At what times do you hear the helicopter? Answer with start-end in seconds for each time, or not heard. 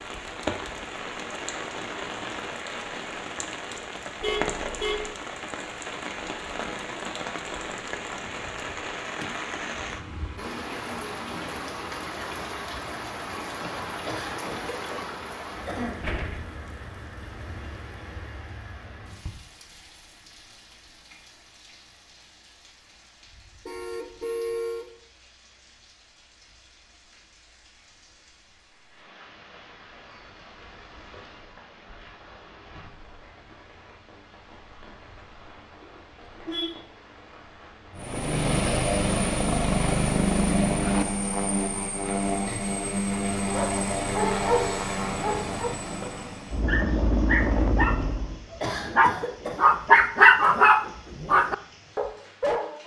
38.0-48.4.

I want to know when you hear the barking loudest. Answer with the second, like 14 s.
50 s.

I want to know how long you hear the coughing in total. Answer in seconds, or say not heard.
3 s.